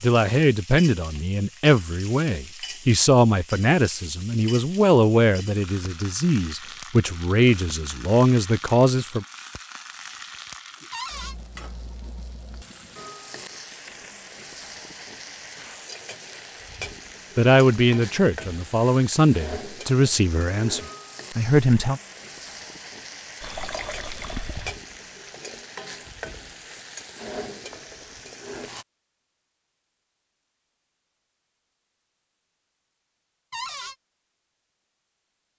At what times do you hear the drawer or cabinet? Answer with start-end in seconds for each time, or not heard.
10.9-11.3, 33.5-34.0.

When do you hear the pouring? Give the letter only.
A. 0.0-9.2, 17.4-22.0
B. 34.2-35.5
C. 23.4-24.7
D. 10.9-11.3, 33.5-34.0
C.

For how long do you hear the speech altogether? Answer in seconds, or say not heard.
14 s.